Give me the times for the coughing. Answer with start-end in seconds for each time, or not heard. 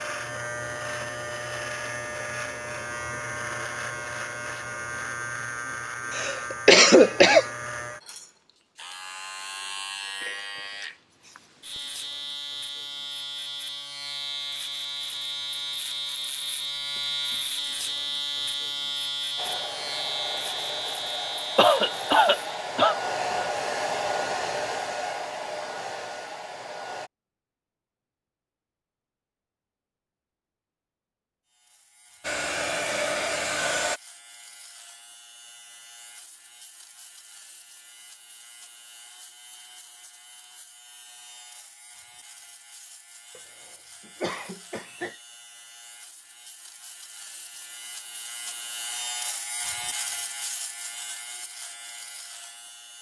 6.1-7.5, 21.6-22.9, 44.0-45.1.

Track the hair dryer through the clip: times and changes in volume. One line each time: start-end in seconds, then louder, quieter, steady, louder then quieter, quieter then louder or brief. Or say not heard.
19.4-27.1 louder then quieter
32.2-34.0 brief.